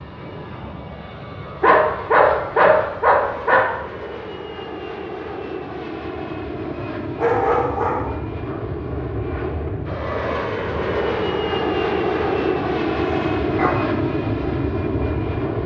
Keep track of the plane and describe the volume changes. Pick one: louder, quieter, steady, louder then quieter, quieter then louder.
louder.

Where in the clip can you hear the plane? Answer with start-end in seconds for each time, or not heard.
0.0-15.6.